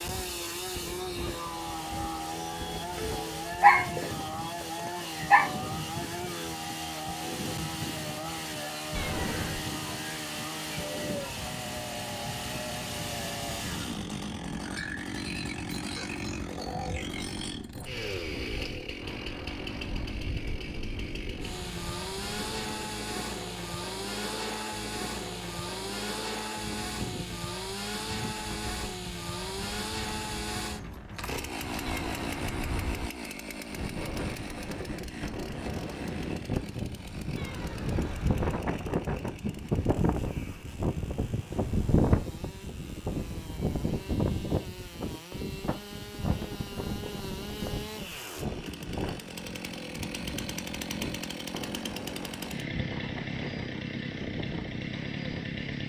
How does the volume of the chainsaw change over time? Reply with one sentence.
The volume of the chainsaw goes down, then up.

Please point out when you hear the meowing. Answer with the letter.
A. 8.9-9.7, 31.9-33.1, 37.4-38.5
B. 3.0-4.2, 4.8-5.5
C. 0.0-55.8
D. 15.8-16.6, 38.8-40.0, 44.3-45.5
A.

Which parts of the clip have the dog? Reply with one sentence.
The dog can be heard from 3.0 to 4.2 s and from 4.8 to 5.5 s.